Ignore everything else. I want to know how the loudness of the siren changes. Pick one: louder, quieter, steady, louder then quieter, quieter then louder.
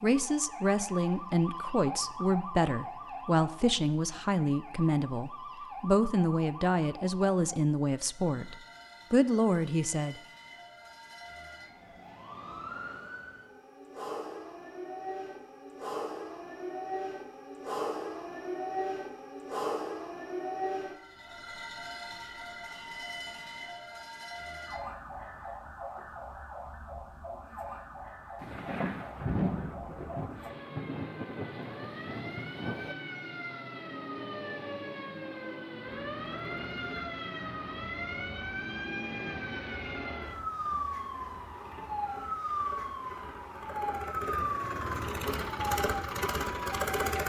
louder.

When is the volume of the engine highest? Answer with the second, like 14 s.
47 s.